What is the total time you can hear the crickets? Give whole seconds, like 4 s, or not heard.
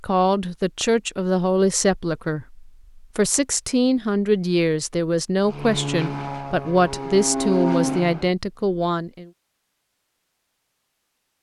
not heard.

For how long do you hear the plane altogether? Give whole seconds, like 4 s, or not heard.
3 s.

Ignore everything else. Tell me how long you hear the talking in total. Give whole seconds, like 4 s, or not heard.
9 s.